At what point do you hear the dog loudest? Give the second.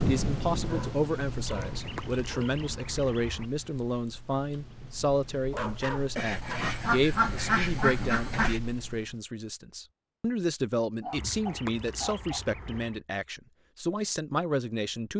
6 s.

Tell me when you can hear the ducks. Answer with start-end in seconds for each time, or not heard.
1.4-3.5, 6.2-8.6, 11.2-13.0.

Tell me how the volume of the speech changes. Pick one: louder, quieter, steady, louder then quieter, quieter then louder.
steady.